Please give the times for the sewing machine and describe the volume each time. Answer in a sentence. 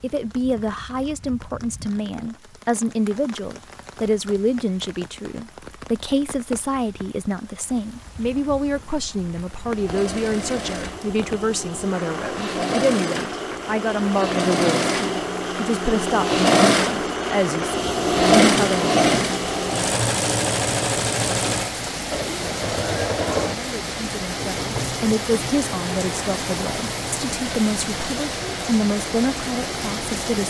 The sewing machine can be heard from 9.6 to 30.4 s, getting louder then quieter.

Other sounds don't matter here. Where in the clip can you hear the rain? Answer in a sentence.
You can hear the rain from 0.0 to 30.4 s.